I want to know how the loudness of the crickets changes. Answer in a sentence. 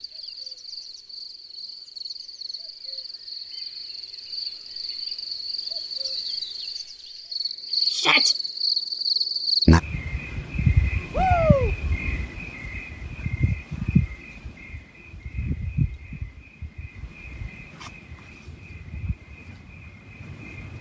The volume of the crickets goes up, then down.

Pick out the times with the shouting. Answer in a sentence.
You can hear the shouting from 7.9 to 8.3 s and from 11.1 to 11.8 s.